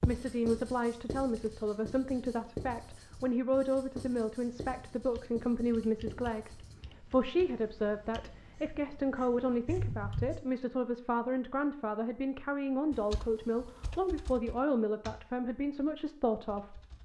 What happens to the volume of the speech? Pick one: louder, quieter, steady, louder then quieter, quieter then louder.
steady.